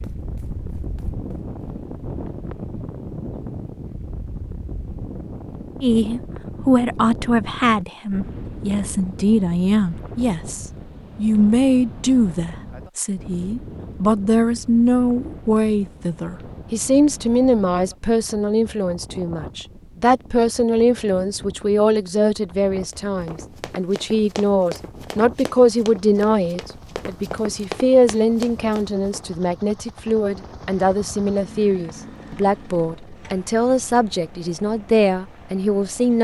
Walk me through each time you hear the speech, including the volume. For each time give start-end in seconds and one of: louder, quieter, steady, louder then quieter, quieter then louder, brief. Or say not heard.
5.8-36.1 steady.